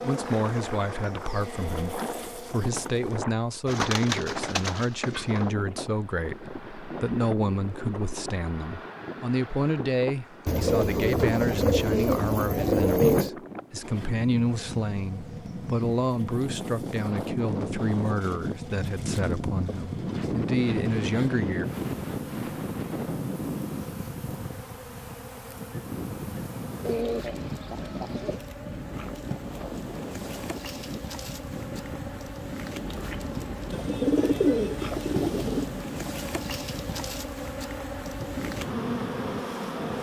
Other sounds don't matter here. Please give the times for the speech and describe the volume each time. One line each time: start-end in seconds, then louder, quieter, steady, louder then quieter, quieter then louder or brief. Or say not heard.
0.0-21.6 steady.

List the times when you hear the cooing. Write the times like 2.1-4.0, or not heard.
3.6-5.5, 10.4-13.3, 26.9-28.4, 33.7-35.7.